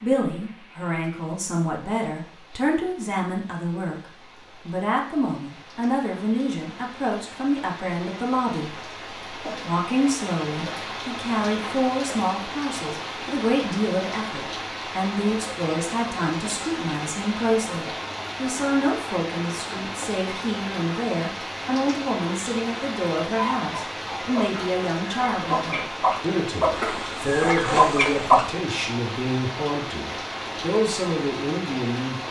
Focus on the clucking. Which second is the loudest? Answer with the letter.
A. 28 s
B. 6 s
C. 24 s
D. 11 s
A.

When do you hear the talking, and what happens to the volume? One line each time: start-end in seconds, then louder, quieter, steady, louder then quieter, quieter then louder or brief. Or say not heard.
0.0-32.1 steady.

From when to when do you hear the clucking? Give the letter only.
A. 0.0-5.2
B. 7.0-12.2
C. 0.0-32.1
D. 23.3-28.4
D.